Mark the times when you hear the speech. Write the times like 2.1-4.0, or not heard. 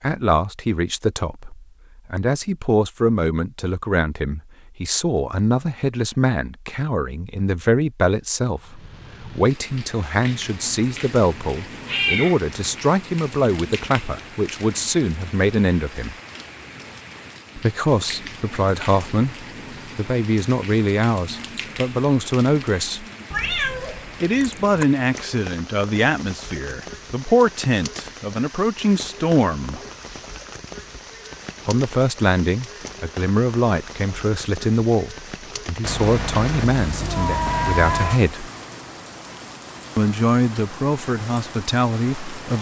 0.0-16.1, 17.6-23.1, 24.2-29.8, 31.6-38.5, 40.0-42.5.